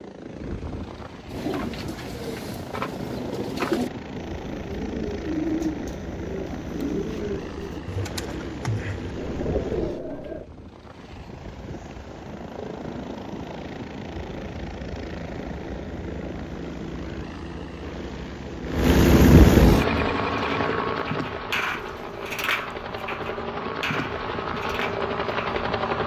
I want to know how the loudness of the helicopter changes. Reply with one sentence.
The loudness of the helicopter goes up, then down.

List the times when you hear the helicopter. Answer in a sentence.
The helicopter can be heard from 0.0 to 26.0 s.